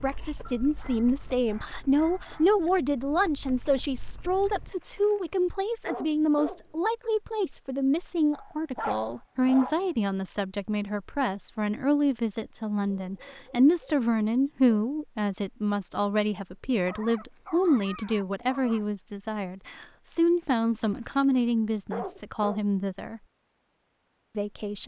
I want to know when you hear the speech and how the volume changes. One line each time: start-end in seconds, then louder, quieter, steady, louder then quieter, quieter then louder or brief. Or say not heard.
0.0-23.2 steady
24.4-24.8 brief.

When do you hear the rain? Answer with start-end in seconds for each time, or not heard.
not heard.